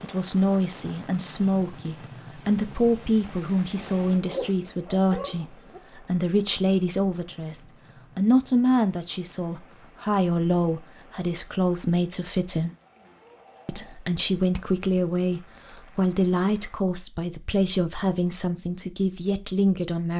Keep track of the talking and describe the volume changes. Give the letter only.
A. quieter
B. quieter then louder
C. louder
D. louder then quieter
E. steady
E.